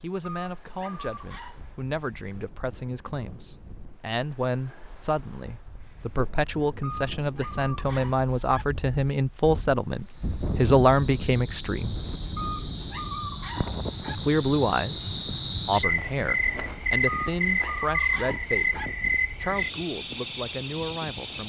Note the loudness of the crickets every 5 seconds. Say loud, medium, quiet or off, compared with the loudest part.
off, off, medium, loud, medium.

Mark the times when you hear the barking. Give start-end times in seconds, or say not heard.
0.2-1.7, 6.8-8.7, 12.3-14.2, 17.1-18.9.